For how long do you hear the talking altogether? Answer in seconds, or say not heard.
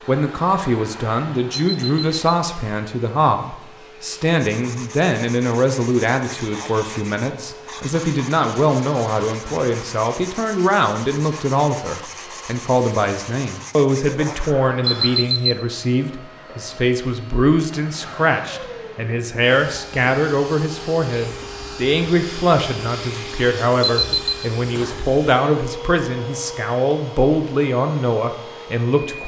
29 s.